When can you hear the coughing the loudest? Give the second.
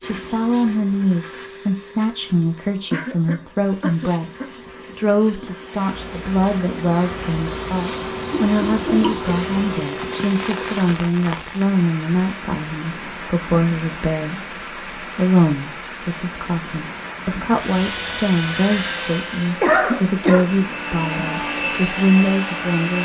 20 s.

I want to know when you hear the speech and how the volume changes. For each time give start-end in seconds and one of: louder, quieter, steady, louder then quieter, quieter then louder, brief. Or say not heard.
0.0-23.0 steady.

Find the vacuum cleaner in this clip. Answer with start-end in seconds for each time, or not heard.
0.0-11.1, 17.5-23.0.